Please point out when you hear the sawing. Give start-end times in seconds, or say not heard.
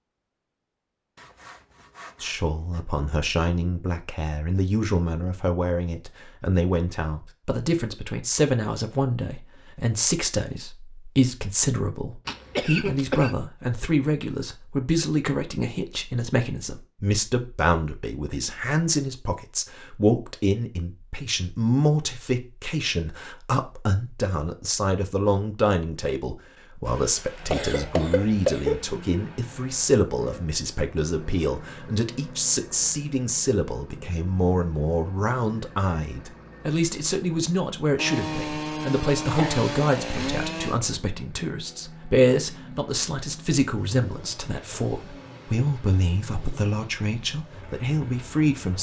1.1-2.9, 38.0-40.8.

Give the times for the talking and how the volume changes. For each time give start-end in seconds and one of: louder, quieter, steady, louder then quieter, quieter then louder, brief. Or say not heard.
2.2-48.7 steady.